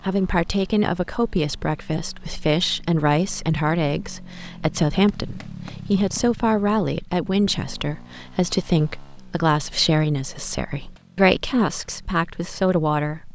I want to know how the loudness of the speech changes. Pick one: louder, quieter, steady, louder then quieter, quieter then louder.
steady.